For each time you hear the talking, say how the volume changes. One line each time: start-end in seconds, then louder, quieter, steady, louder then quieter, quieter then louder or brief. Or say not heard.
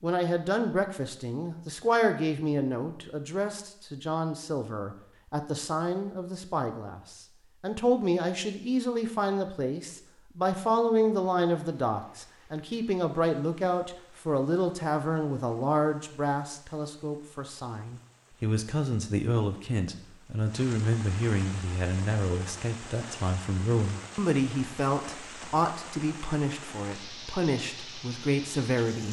0.0-29.0 steady.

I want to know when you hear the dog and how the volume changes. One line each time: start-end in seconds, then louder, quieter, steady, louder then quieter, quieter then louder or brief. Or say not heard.
not heard.